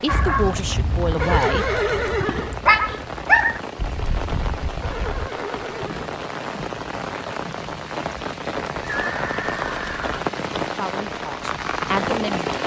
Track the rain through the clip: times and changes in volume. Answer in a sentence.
You can hear the rain from 0.0 to 12.6 s, getting louder.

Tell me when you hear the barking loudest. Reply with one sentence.
The volume of the barking peaks at 3 seconds.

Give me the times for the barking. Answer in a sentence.
You can hear the barking from 0.1 to 5.3 s.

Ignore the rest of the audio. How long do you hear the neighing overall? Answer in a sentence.
The neighing can be heard for 4 seconds in total.